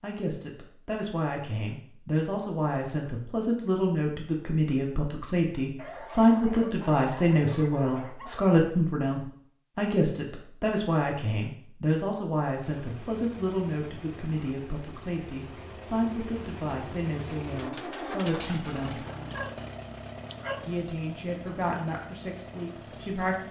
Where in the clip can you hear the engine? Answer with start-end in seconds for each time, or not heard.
12.7-23.4.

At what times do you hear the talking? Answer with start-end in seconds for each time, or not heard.
0.0-19.1, 20.6-23.4.